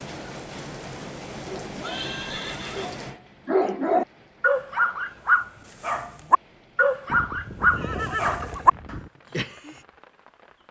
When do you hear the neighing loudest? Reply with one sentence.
The volume of the neighing peaks at 8 seconds.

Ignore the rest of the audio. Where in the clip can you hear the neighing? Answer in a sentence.
The neighing can be heard from 1.8 to 3.0 s and from 7.0 to 9.1 s.